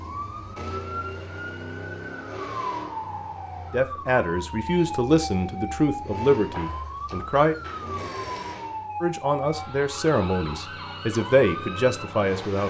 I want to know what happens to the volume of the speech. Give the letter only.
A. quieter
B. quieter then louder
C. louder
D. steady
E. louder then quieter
D.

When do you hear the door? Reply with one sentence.
The door can't be heard in this clip.